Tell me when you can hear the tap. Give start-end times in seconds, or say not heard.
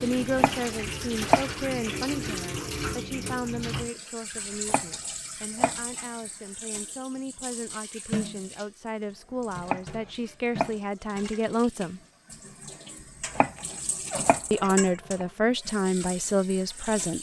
0.0-17.1.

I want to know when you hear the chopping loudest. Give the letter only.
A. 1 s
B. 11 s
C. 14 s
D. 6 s
A.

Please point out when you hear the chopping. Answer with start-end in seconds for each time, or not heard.
0.3-1.4, 4.7-6.0, 9.6-10.8, 13.3-15.2.